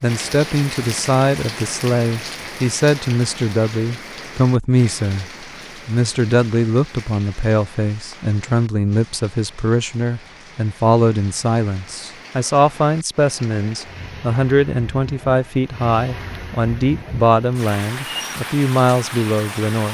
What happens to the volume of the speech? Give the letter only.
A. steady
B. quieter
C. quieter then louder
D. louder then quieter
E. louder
A.